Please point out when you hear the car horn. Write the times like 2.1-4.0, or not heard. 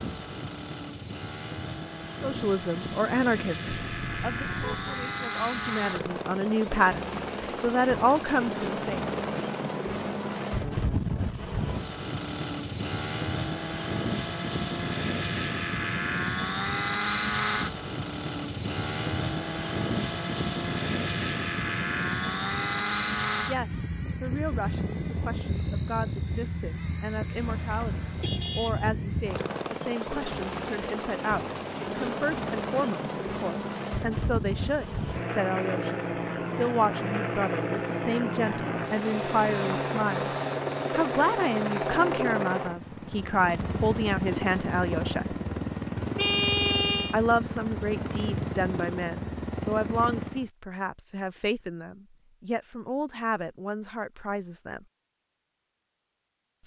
3.6-5.0, 27.4-28.9, 46.1-47.1.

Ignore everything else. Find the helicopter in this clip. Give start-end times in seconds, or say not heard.
0.0-50.5.